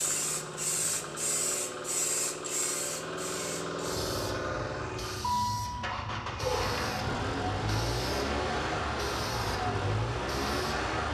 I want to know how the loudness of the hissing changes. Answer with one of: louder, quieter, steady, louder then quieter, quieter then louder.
quieter.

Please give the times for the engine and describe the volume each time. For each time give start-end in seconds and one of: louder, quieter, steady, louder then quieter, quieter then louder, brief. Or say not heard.
0.0-11.0 louder.